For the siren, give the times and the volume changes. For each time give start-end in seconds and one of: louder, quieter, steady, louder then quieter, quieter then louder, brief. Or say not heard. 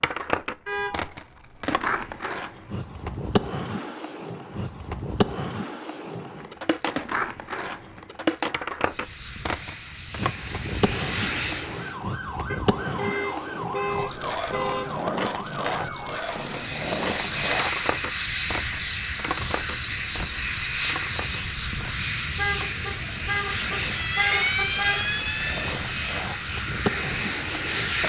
11.7-16.6 steady
23.9-25.6 brief.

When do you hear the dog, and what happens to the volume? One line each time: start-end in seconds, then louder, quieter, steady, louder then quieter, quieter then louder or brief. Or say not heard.
not heard.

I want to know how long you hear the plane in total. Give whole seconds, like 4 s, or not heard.
15 s.